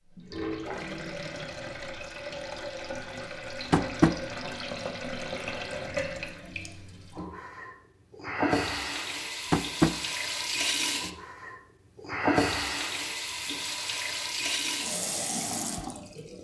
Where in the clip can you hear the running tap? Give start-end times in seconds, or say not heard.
0.0-16.3.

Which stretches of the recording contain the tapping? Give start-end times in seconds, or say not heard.
3.7-4.2, 9.5-9.9.